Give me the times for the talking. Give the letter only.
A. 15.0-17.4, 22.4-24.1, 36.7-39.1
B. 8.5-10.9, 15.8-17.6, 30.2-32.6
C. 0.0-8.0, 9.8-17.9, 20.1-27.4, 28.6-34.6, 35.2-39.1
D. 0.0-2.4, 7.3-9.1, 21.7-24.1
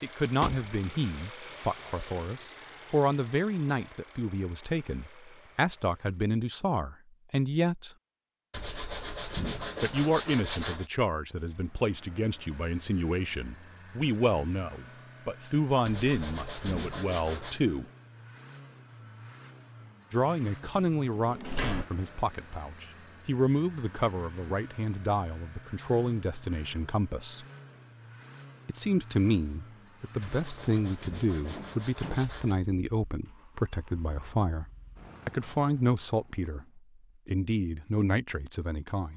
C.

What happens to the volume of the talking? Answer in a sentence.
The volume of the talking stays about the same.